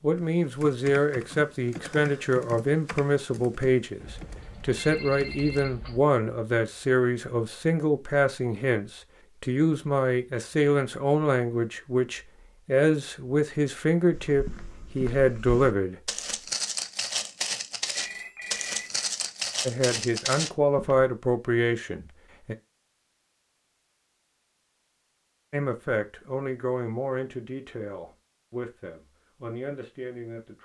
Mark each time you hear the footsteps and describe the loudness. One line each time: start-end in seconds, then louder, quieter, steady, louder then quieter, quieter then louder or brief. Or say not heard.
14.1-21.1 louder.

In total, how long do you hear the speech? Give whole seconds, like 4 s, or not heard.
24 s.